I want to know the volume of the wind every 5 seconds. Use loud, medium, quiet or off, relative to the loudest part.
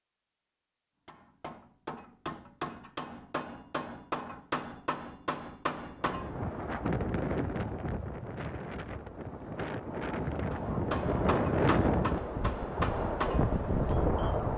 off, medium, loud.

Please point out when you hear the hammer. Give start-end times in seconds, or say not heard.
1.1-6.3, 10.5-14.4.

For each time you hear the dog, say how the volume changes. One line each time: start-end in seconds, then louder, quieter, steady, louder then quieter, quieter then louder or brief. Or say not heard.
not heard.